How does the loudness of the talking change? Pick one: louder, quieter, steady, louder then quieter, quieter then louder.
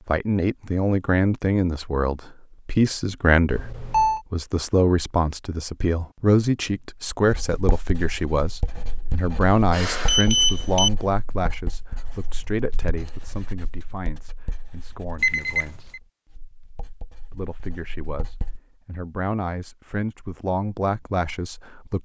quieter then louder.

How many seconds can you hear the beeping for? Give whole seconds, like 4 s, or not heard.
3 s.